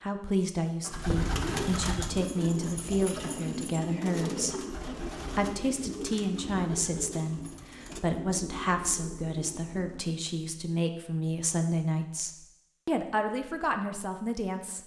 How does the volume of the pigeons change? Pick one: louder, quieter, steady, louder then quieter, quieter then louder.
quieter.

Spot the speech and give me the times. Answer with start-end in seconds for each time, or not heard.
0.0-14.8.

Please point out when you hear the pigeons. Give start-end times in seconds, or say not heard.
0.8-10.1.